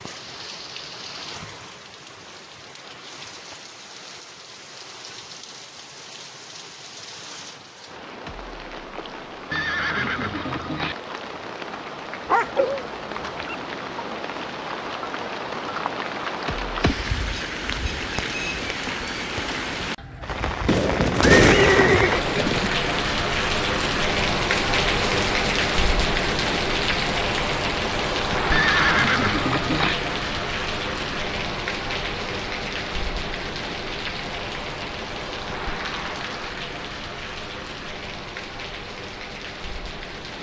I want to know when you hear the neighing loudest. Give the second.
21 s.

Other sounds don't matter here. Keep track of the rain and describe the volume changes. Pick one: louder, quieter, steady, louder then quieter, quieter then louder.
louder then quieter.